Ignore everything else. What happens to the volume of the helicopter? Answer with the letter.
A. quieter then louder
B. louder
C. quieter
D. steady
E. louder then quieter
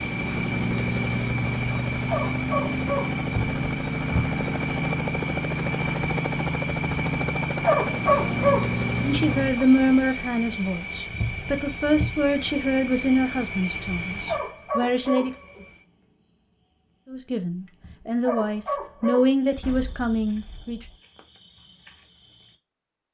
D.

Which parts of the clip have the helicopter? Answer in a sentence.
The helicopter can be heard from 0.0 to 9.6 s.